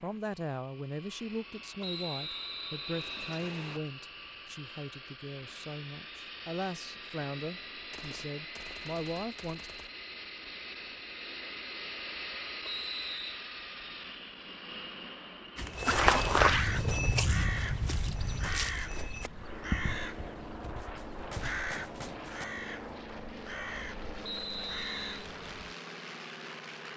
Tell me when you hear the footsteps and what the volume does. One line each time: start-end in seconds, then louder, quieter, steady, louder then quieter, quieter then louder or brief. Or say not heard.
15.6-21.6 quieter.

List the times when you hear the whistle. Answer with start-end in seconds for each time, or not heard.
1.8-3.8, 12.6-13.4, 24.2-25.2.